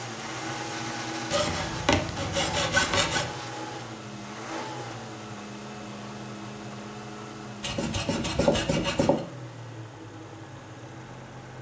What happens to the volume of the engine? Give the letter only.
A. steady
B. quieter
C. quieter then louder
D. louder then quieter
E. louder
B.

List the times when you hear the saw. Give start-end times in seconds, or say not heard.
1.3-3.4, 7.6-9.2.